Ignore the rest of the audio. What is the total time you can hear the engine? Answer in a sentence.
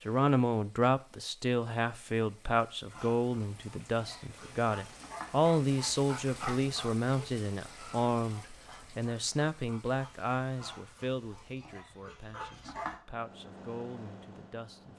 You can hear the engine for 2 seconds altogether.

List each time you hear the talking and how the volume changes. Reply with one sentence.
You can hear the talking from 0.0 to 14.9 s, getting quieter.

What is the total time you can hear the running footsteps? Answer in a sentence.
The running footsteps can't be heard in this clip.